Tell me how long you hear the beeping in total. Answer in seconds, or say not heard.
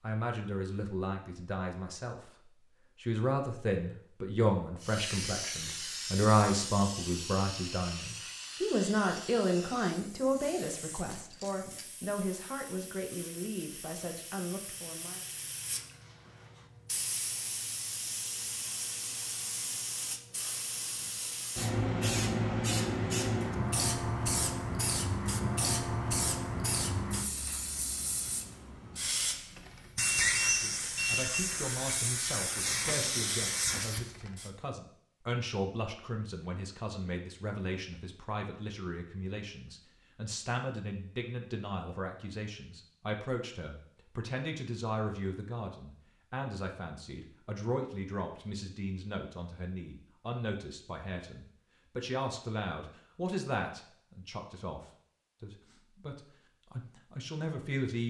2 s.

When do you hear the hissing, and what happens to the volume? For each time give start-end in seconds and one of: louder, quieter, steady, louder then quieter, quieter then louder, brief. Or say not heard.
4.8-34.5 quieter then louder.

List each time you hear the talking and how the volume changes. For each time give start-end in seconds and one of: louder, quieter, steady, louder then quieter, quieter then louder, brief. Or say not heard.
0.0-15.2 louder then quieter
30.6-58.0 steady.